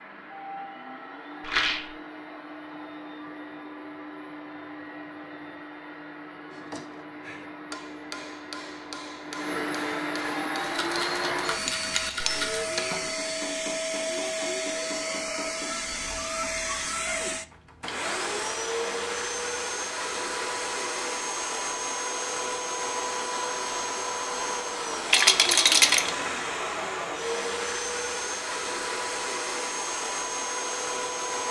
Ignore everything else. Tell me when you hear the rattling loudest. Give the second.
26 s.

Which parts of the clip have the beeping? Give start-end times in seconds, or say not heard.
not heard.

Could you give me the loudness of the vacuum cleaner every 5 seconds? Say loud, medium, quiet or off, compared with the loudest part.
medium, medium, loud, loud, loud, loud, loud.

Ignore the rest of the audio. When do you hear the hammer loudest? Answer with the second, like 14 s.
12 s.